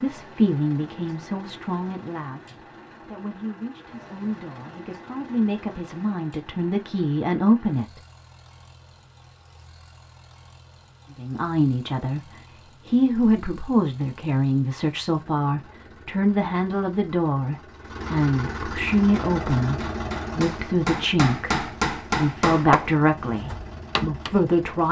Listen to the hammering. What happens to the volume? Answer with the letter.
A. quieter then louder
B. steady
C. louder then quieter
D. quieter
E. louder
C.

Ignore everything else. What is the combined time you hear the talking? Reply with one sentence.
The talking can be heard for 21 seconds in total.